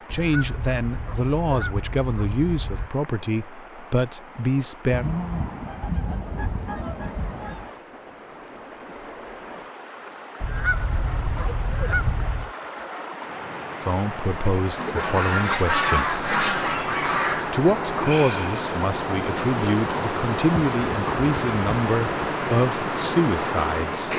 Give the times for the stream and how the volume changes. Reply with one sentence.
You can hear the stream from 0.0 to 24.1 s, getting louder.